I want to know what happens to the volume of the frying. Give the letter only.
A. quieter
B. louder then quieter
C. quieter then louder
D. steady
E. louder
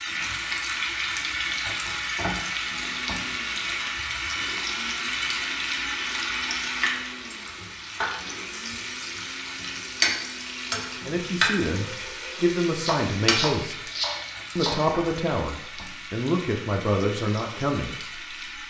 A.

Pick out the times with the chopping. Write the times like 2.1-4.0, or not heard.
12.8-14.8.